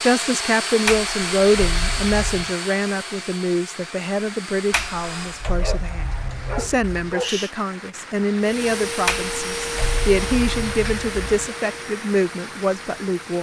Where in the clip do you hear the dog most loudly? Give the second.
7 s.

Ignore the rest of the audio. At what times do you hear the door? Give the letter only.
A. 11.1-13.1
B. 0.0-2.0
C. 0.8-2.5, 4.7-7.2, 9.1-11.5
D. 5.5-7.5
C.